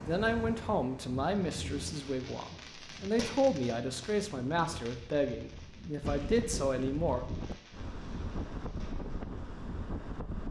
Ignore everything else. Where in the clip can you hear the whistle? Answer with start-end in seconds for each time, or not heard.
not heard.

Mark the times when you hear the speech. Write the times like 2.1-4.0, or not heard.
0.0-7.2.